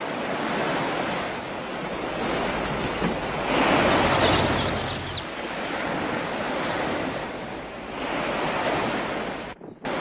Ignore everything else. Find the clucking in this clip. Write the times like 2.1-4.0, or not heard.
3.7-5.3.